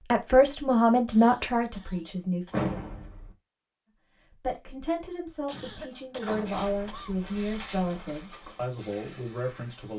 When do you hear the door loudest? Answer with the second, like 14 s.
3 s.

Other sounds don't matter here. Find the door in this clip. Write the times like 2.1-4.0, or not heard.
2.5-3.4, 5.9-7.0.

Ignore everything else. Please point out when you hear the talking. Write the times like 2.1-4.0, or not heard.
0.1-2.6, 4.3-9.9.